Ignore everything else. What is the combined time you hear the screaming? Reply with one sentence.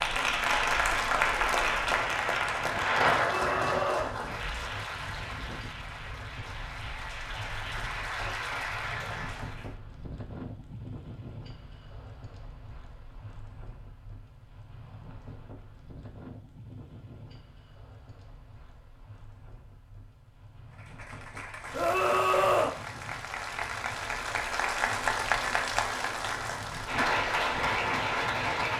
You can hear the screaming for 2 seconds altogether.